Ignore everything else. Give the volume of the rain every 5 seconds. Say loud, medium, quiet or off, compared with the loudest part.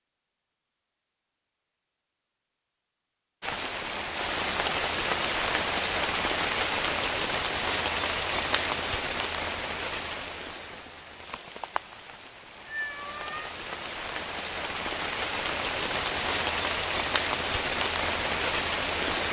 loud, loud, medium, loud.